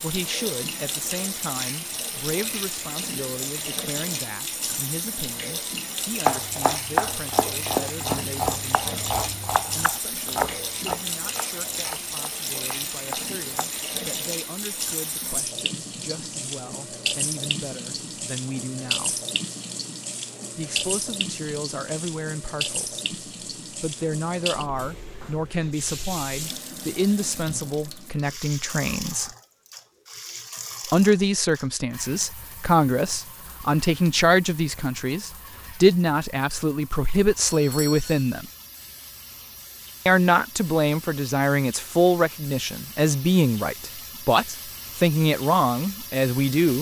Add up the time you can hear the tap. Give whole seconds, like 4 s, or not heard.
47 s.